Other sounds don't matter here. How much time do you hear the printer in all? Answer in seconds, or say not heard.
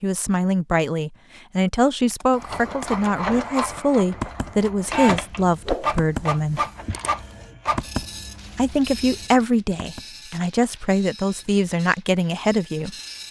11 s.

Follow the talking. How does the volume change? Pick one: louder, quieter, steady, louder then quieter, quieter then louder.
steady.